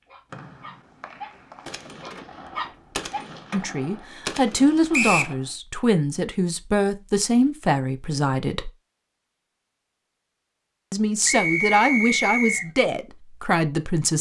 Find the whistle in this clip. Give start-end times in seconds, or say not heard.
0.3-1.6, 4.9-5.3, 11.2-12.7.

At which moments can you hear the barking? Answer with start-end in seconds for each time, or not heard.
0.0-3.3.